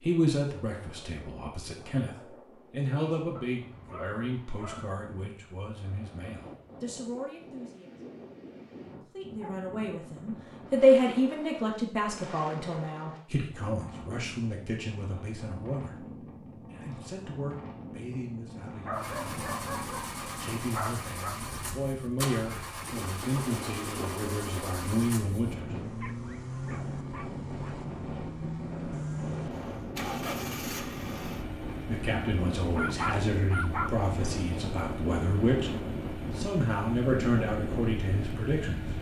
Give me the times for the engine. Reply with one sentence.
The engine can be heard from 18.9 to 38.9 s.